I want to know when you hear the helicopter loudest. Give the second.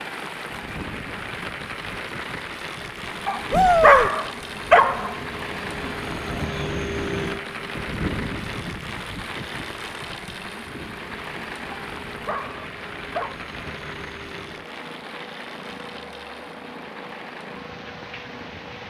7 s.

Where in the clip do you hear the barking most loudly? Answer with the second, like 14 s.
4 s.